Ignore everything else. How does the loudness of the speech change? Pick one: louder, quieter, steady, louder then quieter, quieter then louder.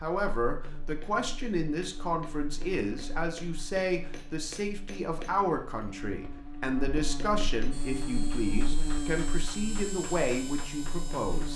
steady.